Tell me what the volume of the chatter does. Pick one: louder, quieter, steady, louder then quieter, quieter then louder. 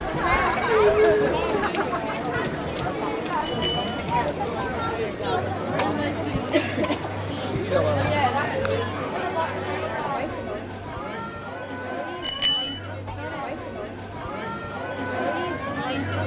quieter.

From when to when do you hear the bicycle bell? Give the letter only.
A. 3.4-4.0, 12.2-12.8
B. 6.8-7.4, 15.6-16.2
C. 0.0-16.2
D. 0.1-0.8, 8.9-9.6
A.